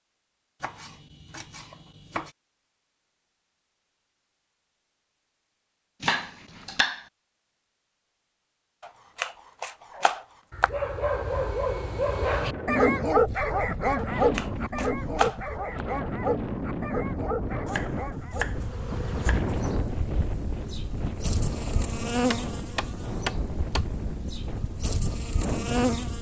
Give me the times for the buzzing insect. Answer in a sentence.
You can hear the buzzing insect from 18.5 to 26.1 s.